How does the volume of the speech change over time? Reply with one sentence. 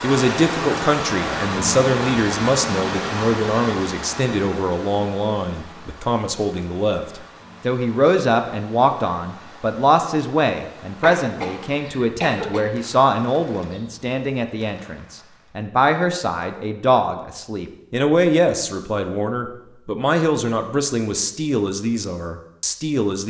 The volume of the speech stays about the same.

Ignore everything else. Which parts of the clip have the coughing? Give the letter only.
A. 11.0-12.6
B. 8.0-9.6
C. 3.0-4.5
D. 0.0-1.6
A.